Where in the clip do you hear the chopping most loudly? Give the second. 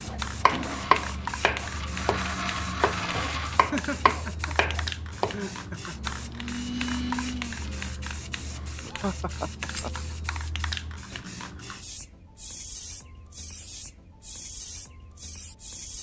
1 s.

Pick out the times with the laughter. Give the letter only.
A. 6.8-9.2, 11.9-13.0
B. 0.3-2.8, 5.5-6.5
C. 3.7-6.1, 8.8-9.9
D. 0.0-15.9
C.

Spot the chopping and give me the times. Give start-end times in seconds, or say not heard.
0.1-5.7.